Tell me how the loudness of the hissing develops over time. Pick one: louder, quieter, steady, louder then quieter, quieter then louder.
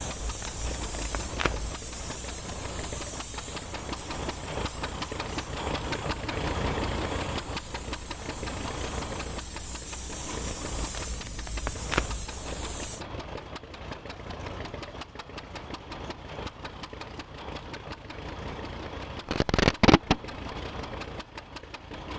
quieter then louder.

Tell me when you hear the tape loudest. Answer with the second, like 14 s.
20 s.